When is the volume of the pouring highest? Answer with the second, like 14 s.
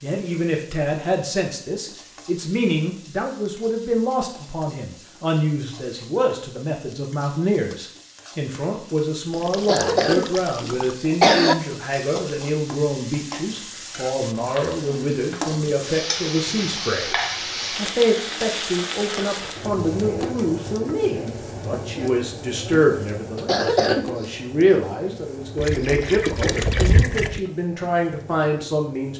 27 s.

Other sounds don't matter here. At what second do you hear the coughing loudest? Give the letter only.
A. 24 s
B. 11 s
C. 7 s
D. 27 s
B.